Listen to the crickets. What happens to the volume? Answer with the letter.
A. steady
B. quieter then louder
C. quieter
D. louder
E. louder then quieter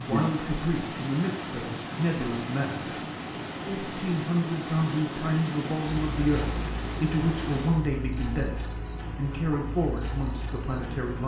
A.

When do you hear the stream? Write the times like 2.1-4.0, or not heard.
0.0-7.8.